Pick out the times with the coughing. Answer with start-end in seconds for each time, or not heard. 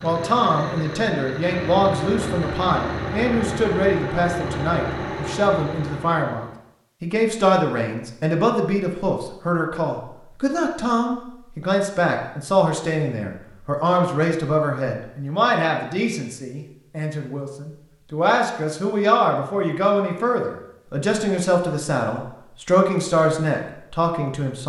not heard.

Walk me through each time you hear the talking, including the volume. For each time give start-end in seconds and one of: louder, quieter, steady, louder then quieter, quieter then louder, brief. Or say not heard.
0.0-24.6 steady.